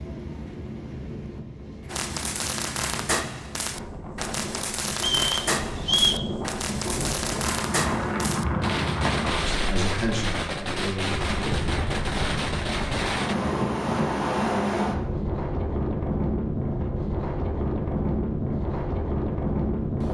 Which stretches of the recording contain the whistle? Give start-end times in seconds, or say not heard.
5.0-6.2.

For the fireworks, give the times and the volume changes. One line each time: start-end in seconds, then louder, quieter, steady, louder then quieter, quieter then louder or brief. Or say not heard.
1.9-13.3 steady.